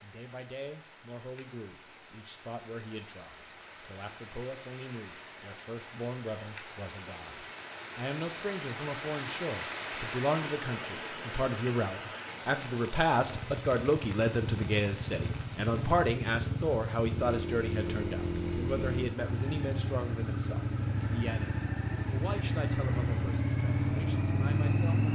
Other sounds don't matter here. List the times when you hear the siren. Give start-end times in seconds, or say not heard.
not heard.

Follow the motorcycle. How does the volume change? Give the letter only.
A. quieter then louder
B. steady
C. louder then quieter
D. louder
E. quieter
D.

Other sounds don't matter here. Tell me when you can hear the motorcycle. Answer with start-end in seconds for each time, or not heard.
13.2-25.1.